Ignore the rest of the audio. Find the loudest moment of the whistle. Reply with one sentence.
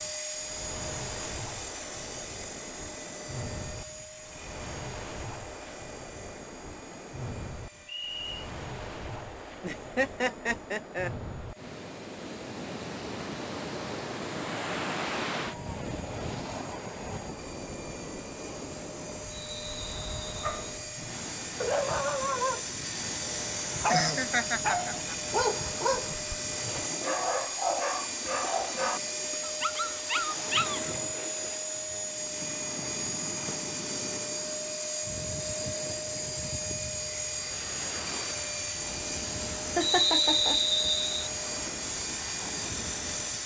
The loudest moment of the whistle is at 40 seconds.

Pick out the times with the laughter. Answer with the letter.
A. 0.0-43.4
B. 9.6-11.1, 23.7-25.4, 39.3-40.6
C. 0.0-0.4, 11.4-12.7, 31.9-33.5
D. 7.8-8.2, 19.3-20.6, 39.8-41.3
B.